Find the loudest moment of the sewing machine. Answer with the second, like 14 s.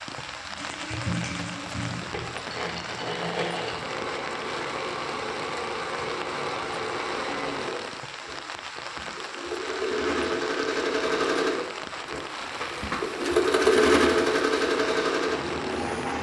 14 s.